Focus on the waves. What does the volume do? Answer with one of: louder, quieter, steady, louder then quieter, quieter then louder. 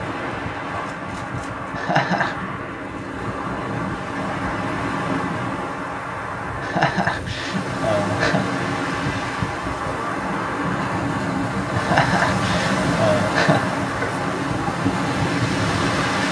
louder.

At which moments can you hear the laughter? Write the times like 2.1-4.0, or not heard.
1.7-2.4, 6.6-8.4, 11.8-13.8.